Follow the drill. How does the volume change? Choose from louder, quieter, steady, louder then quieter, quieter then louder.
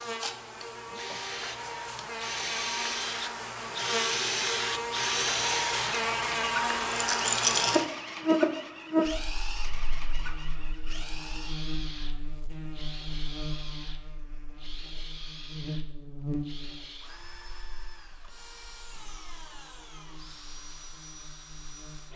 quieter.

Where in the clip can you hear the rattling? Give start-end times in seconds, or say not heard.
6.9-7.8.